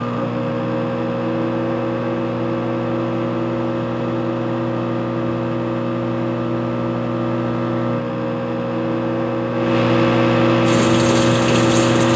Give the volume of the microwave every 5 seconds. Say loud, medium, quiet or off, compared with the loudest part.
medium, medium, loud.